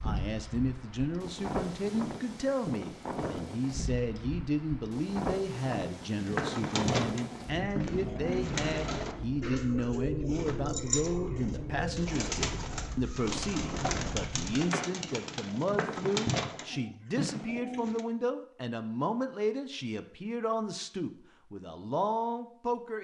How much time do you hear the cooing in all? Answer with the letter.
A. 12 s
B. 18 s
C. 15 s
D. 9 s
A.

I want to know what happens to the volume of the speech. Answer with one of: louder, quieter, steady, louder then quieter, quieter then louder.
steady.